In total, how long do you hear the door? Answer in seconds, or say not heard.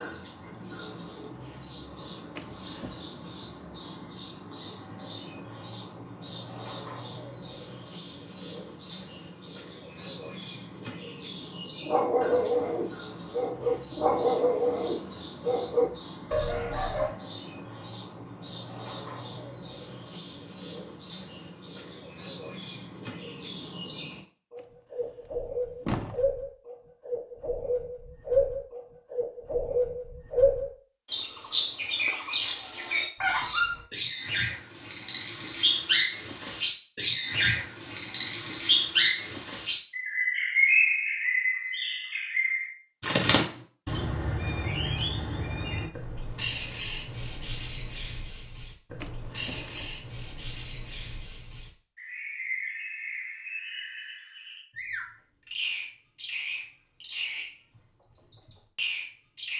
3 s.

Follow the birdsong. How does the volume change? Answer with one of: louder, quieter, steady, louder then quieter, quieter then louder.
louder then quieter.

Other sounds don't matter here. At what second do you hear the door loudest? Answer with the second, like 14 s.
26 s.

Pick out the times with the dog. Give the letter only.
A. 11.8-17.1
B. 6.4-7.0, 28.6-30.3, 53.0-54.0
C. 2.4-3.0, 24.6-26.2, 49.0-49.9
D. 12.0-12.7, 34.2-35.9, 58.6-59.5
A.